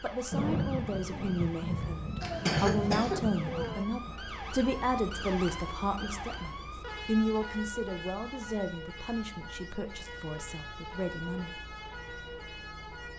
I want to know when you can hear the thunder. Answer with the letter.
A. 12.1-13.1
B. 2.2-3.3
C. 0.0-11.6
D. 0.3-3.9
D.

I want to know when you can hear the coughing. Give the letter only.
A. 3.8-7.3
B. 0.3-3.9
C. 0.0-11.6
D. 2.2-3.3
D.